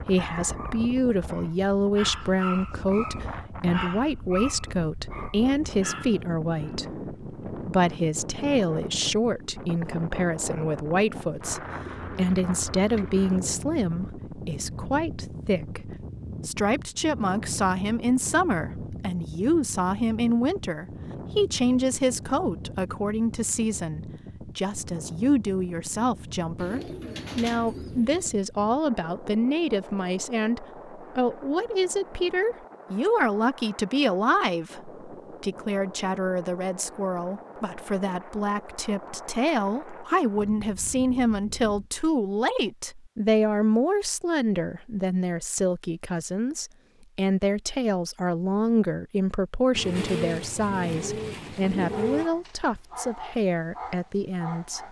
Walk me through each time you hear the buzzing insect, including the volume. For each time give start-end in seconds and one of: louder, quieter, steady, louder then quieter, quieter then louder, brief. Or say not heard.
not heard.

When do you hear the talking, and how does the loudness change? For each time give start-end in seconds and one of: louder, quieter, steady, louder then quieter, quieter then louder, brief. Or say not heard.
0.1-54.8 steady.